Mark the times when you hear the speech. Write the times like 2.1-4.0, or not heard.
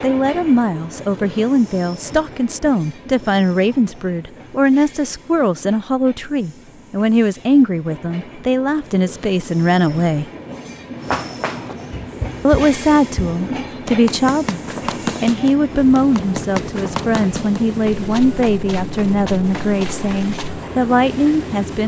0.0-10.2, 12.4-21.8.